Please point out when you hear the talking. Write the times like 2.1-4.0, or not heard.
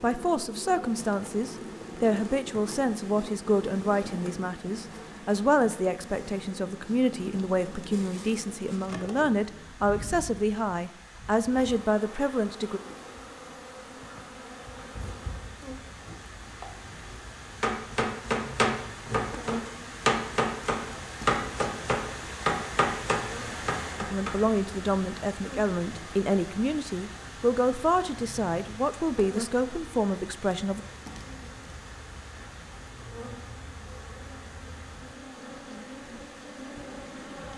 0.0-12.8, 24.0-30.8.